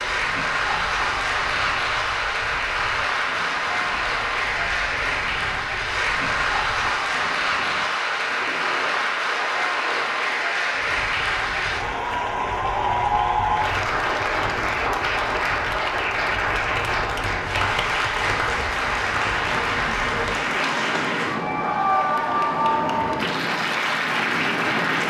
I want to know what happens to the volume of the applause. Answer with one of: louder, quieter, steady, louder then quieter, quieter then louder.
steady.